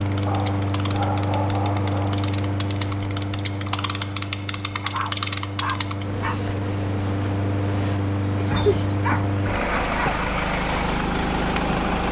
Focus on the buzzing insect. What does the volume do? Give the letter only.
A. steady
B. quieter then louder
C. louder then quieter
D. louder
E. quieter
C.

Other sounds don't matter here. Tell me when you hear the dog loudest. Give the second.
9 s.